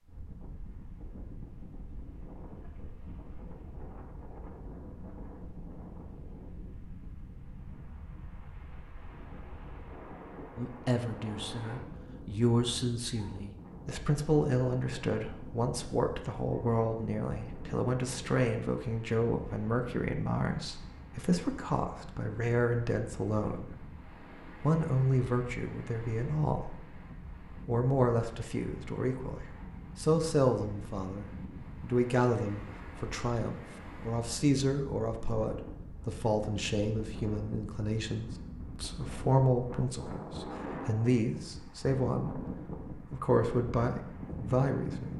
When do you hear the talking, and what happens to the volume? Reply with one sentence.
The talking can be heard from 10.6 to 23.9 s, at a steady volume; briefly from 24.6 to 26.9 s; and from 27.6 to 45.1 s, at a steady volume.